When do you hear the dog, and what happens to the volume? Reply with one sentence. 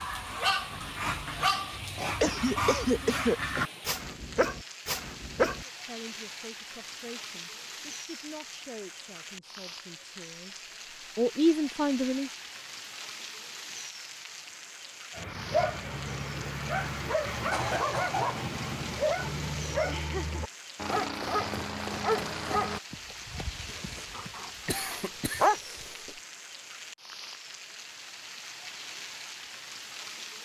The dog can be heard from 0.0 to 5.7 s, at a steady volume; and from 15.2 to 25.6 s, getting quieter.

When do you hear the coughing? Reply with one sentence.
You can hear the coughing from 2.2 to 3.4 s, from 17.5 to 18.4 s and from 24.6 to 26.1 s.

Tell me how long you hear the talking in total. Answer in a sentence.
The talking can be heard for 7 seconds in total.